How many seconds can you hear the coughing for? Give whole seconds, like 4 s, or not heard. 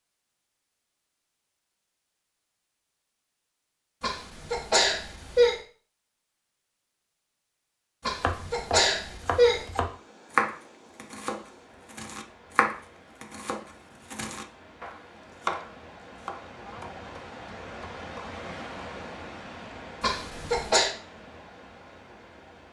4 s.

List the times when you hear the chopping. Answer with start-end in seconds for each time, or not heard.
8.2-18.4.